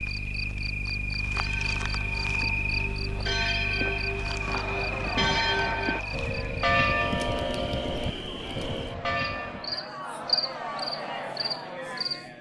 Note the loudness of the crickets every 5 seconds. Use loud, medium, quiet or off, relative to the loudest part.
loud, medium, loud.